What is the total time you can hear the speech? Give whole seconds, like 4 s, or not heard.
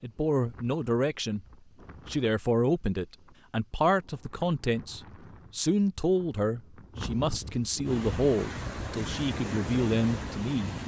10 s.